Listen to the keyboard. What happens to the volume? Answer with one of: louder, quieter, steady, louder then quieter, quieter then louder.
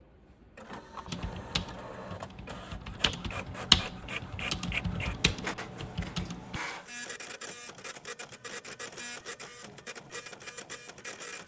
louder then quieter.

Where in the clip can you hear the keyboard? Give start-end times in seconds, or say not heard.
1.1-6.6.